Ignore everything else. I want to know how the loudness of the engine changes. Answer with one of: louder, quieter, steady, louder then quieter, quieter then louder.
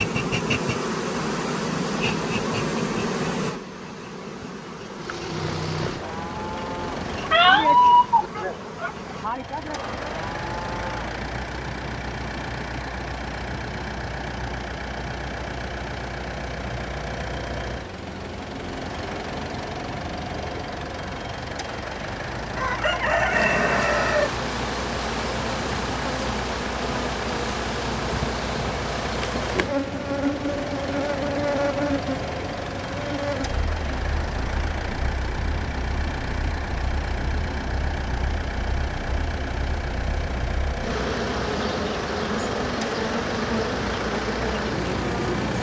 steady.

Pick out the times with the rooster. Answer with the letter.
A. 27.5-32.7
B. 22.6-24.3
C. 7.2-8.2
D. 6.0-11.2
B.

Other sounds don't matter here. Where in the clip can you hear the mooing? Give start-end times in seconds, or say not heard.
6.0-11.2.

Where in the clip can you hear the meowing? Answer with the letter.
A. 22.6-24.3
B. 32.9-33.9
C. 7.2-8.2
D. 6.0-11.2
C.